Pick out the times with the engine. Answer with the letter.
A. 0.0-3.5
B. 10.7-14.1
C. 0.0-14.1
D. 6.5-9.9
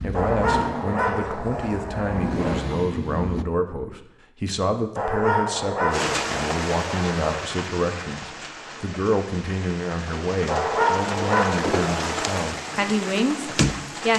A.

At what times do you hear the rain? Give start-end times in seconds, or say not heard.
5.9-14.1.